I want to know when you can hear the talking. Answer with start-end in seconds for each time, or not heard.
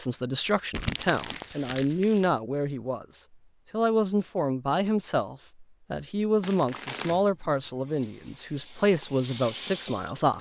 0.0-10.3.